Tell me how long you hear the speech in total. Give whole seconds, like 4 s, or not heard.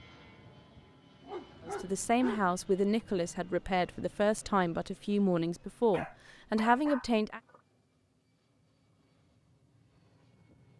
6 s.